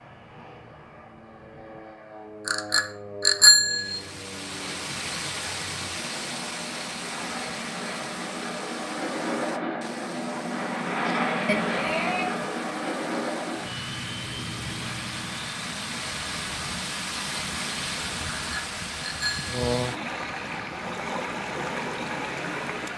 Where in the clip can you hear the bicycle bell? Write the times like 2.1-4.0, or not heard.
2.5-4.0, 11.4-12.4, 18.3-19.6.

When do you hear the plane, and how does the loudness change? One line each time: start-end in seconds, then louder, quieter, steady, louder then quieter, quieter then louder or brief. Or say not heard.
0.0-22.9 louder then quieter.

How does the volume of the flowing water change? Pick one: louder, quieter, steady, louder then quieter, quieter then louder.
quieter then louder.